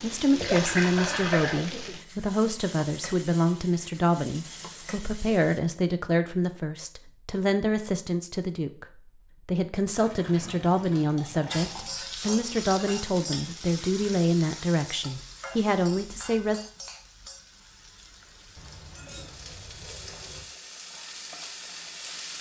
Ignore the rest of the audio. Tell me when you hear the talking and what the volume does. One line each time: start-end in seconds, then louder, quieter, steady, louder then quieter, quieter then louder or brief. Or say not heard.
0.0-8.8 steady
9.4-16.6 steady.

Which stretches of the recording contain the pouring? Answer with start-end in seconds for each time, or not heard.
0.3-1.6, 9.9-11.9, 18.6-20.4.